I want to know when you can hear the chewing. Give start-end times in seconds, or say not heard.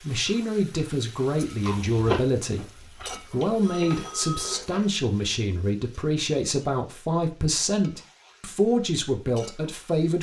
1.6-3.6.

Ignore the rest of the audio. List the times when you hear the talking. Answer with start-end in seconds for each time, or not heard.
0.0-2.6, 3.3-10.1.